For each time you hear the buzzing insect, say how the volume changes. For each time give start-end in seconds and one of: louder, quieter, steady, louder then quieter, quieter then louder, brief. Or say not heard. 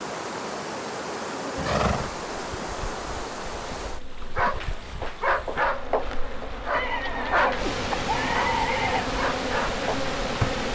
0.0-10.7 quieter then louder.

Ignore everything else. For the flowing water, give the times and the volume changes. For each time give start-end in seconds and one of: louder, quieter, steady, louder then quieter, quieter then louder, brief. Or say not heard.
0.0-10.7 quieter then louder.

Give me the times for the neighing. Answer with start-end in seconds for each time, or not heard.
1.6-2.2, 6.7-9.1.